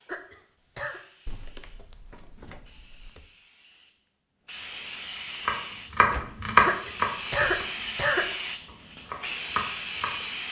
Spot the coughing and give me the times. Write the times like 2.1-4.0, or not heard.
0.1-1.0, 6.7-8.2.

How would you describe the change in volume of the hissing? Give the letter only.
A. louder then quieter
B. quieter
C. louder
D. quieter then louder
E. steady
C.